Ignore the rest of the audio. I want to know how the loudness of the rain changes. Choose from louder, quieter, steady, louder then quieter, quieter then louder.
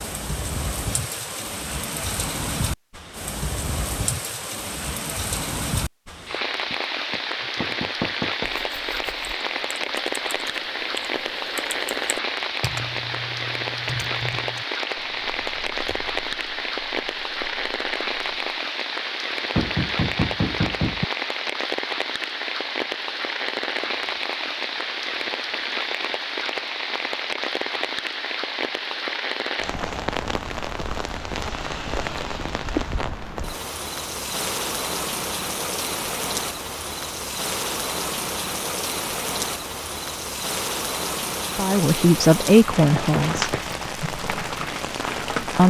steady.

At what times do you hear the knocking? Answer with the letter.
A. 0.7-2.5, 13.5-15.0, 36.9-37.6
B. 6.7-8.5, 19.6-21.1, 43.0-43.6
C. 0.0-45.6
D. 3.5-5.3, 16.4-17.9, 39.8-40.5
B.